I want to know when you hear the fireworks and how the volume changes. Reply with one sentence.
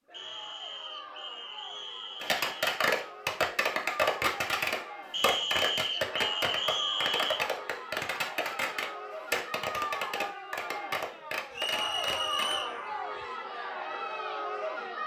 The fireworks can be heard from 2.2 to 12.6 s, getting quieter.